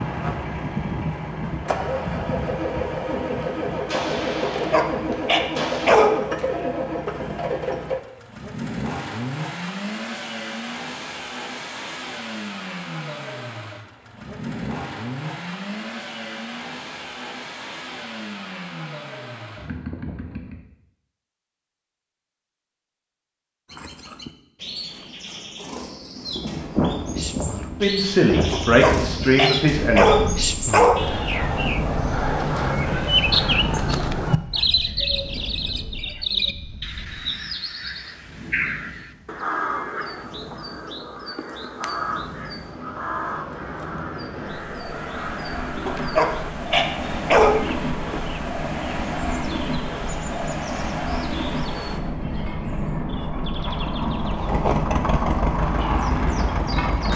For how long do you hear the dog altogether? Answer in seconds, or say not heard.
6 s.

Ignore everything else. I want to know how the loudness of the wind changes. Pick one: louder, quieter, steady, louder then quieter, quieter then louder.
quieter then louder.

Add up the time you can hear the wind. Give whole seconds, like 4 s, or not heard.
31 s.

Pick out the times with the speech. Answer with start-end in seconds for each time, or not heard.
27.8-30.4.